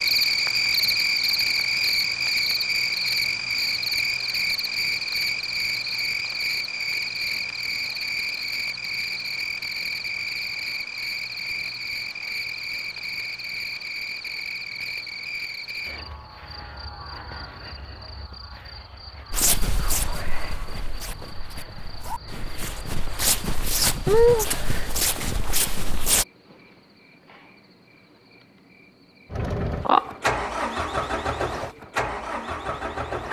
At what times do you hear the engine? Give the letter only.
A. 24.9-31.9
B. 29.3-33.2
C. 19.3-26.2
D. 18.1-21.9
B.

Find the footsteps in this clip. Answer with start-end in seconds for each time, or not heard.
19.3-26.2.